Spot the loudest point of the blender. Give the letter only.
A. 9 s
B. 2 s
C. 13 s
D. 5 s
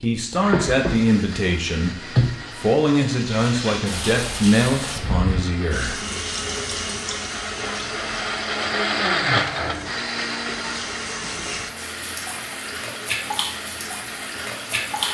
A.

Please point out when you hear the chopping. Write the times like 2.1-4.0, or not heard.
not heard.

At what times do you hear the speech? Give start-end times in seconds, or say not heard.
0.0-6.0.